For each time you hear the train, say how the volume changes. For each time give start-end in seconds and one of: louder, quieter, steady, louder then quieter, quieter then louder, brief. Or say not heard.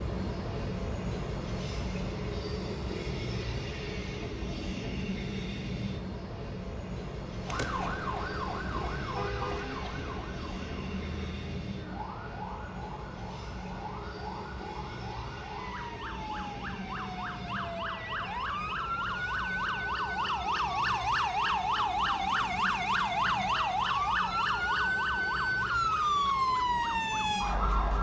0.0-27.9 quieter.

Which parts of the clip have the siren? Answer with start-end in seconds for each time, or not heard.
7.5-27.9.